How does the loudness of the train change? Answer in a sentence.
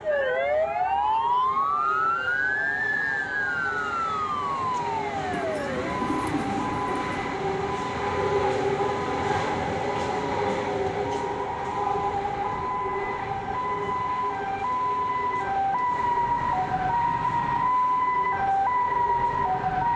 The volume of the train goes up, then down.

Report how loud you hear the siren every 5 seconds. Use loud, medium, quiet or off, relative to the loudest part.
loud, medium, medium, loud.